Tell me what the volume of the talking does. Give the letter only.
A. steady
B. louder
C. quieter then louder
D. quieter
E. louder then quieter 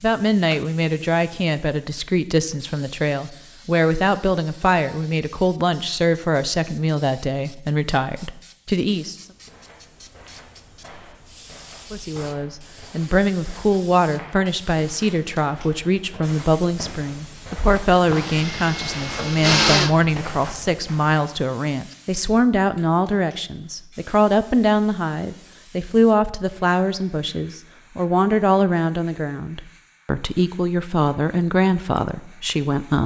A.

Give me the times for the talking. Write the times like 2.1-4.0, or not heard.
0.0-9.2, 11.9-33.0.